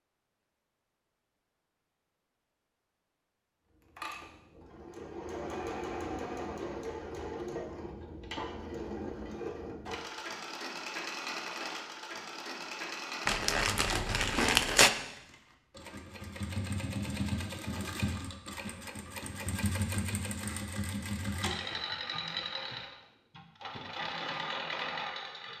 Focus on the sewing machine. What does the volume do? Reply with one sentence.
The loudness of the sewing machine stays about the same.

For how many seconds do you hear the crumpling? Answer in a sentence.
You can hear the crumpling for 2 seconds altogether.